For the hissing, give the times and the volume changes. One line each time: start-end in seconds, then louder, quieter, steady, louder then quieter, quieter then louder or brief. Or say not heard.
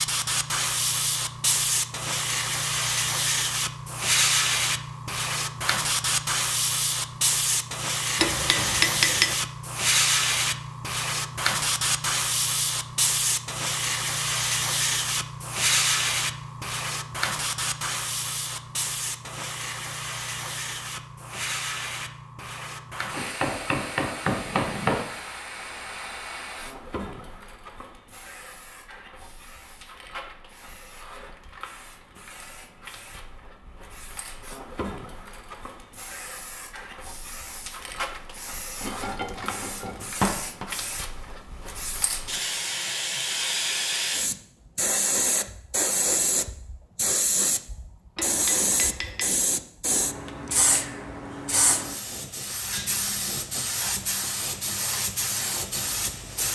0.0-56.5 quieter then louder.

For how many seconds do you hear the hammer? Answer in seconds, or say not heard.
6 s.